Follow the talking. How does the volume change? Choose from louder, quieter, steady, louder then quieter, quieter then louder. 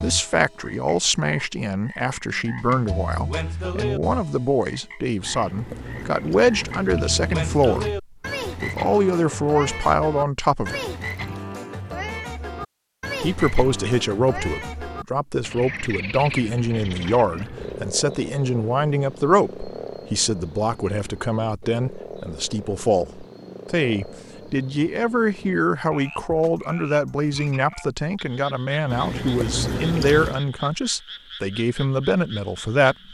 steady.